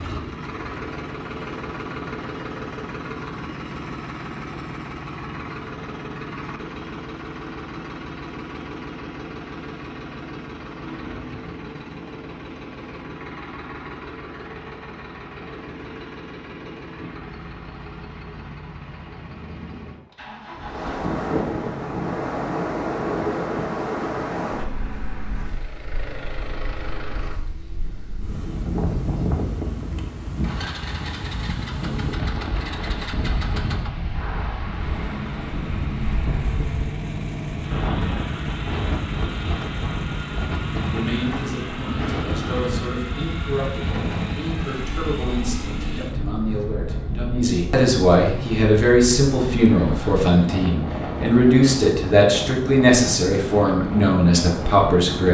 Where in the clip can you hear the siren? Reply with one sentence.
You can't hear the siren here.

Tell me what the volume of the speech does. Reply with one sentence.
The loudness of the speech goes up.